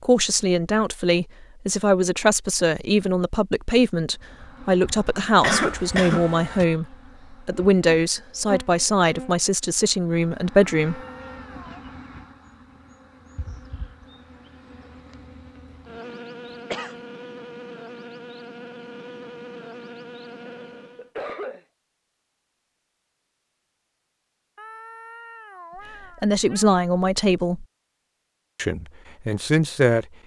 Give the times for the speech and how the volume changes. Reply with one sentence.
You can hear the speech from 0.0 to 11.0 s, at a steady volume; briefly from 26.2 to 27.6 s; and briefly from 28.6 to 30.1 s.